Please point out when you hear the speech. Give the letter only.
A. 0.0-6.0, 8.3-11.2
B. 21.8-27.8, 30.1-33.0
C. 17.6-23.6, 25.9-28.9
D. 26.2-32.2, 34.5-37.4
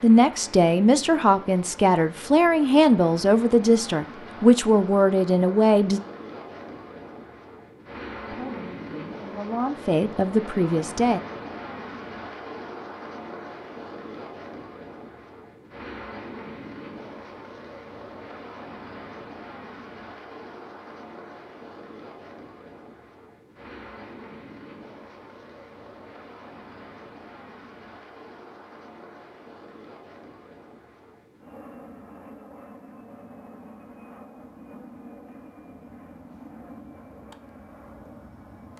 A.